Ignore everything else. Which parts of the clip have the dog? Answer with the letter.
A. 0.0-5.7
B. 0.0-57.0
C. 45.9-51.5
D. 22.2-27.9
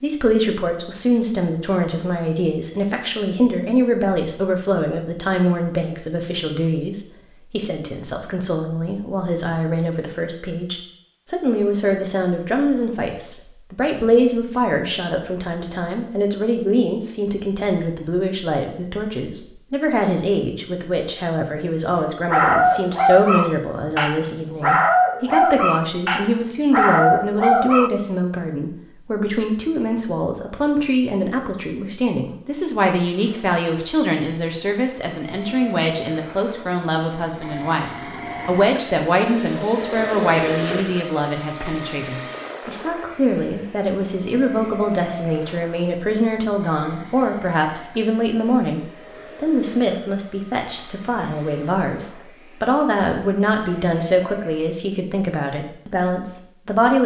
D.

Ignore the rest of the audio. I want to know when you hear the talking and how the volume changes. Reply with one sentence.
The talking can be heard from 0.0 to 57.0 s, at a steady volume.